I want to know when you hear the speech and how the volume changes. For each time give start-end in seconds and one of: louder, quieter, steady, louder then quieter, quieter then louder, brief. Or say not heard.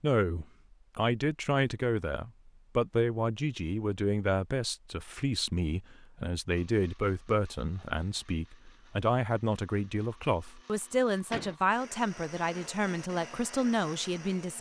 0.0-14.5 steady.